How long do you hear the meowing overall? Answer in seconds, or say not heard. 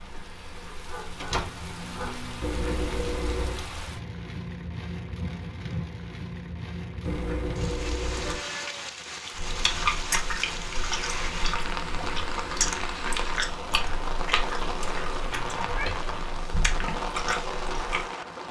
3 s.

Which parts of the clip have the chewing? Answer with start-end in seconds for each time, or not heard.
9.3-18.1.